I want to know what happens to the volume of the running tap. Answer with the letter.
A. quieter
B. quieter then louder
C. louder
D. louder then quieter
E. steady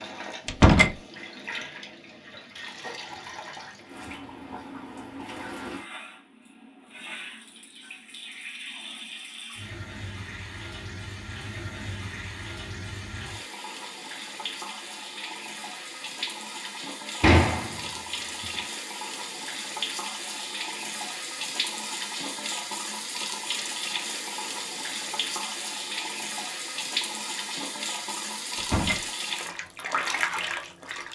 C.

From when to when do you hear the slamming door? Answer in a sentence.
The slamming door can be heard from 0.5 to 0.9 s, from 17.2 to 18.4 s and from 28.6 to 29.1 s.